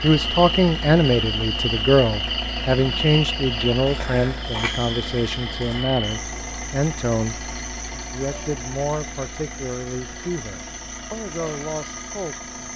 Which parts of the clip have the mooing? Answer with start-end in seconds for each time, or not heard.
not heard.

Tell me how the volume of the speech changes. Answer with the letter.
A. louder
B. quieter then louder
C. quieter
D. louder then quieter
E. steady
C.